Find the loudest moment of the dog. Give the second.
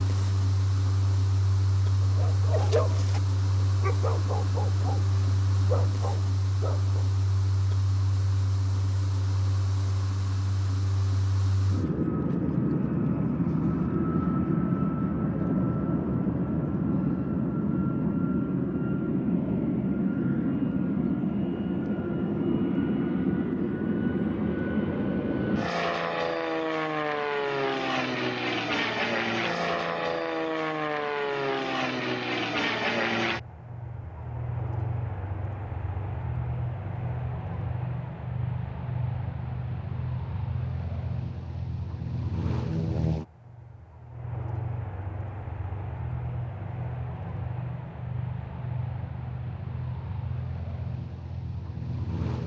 3 s.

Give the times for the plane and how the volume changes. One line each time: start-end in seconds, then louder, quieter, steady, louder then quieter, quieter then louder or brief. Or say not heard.
0.0-52.4 louder then quieter.